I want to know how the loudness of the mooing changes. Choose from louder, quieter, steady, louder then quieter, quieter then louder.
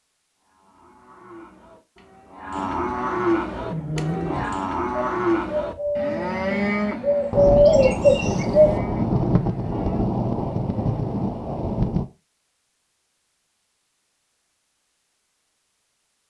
louder then quieter.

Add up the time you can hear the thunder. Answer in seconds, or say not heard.
5 s.